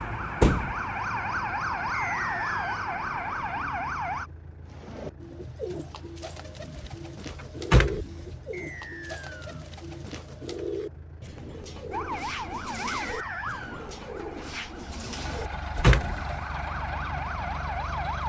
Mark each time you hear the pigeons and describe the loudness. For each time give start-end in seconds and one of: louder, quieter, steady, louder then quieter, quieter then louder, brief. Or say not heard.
4.7-16.0 steady.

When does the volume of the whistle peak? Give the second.
2 s.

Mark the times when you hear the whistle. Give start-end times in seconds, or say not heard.
1.9-2.9, 8.5-9.7, 13.0-13.9.